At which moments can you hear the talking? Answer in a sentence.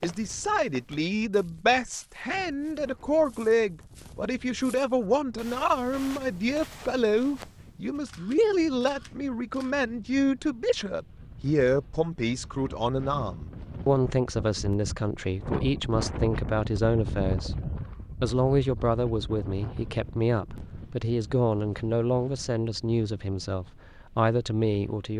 The talking can be heard from 0.0 to 17.6 s and from 18.2 to 25.1 s.